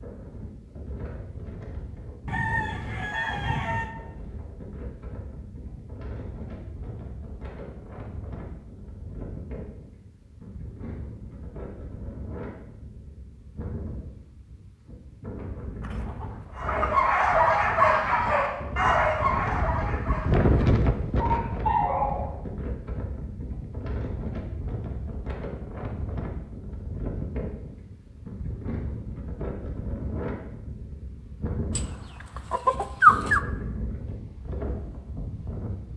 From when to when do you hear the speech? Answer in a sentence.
The speech can't be heard in this clip.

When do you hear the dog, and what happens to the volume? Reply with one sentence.
The dog can be heard from 16.6 to 22.3 s, getting quieter then louder.